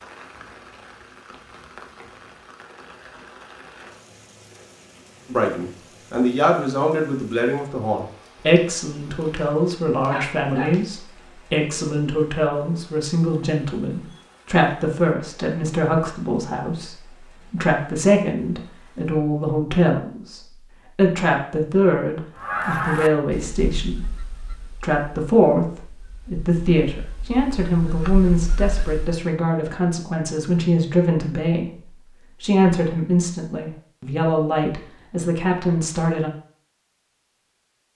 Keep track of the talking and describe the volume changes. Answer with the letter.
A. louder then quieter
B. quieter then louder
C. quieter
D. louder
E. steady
E.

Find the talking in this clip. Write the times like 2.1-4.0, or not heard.
5.2-36.3.